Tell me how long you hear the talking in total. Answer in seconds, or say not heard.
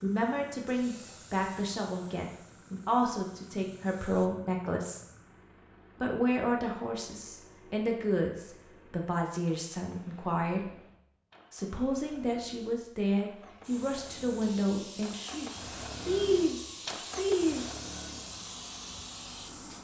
16 s.